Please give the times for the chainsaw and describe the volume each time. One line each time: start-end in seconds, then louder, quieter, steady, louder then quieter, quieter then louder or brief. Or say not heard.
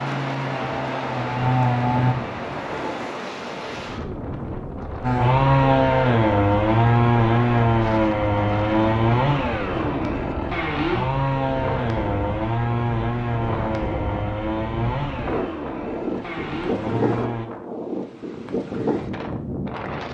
0.0-2.1 brief
5.0-17.5 quieter.